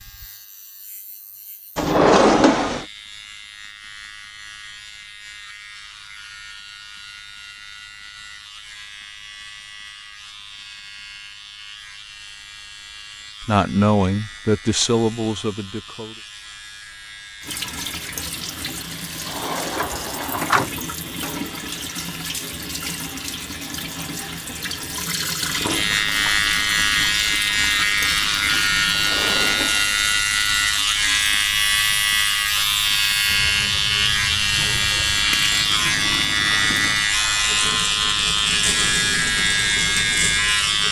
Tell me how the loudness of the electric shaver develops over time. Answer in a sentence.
The loudness of the electric shaver goes up.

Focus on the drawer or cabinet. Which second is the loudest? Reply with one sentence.
The volume of the drawer or cabinet peaks at 2 seconds.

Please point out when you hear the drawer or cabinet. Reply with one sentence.
You can hear the drawer or cabinet from 1.8 to 2.9 s, from 19.2 to 20.7 s and from 28.9 to 30.2 s.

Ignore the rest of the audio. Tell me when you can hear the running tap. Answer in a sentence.
You can hear the running tap from 17.4 to 40.8 s.